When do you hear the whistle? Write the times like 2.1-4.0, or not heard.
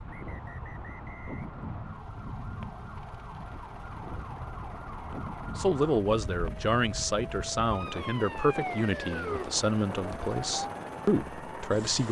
0.1-2.0.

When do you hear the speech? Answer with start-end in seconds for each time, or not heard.
5.0-12.0.